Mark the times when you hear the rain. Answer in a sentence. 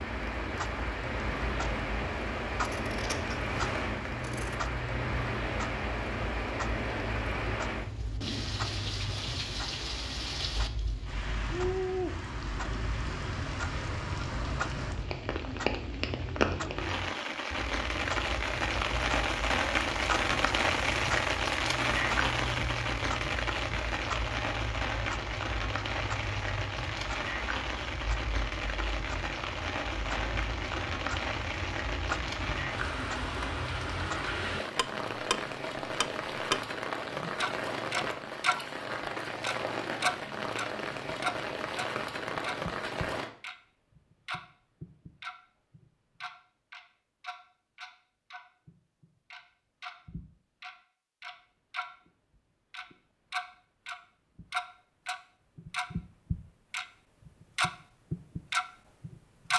You can hear the rain from 0.0 to 43.3 s.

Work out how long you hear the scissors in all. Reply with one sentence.
You can hear the scissors for 2 seconds altogether.